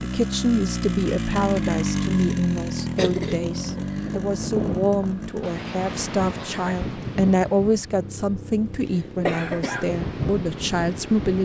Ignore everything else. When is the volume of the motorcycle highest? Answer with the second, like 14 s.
2 s.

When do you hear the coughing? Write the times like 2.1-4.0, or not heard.
3.0-4.2, 9.2-9.9.